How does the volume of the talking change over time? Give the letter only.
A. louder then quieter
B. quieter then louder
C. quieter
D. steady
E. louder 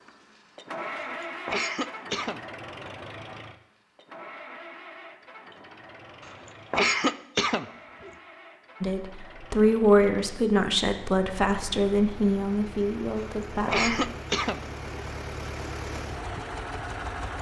C.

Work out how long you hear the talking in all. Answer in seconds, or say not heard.
5 s.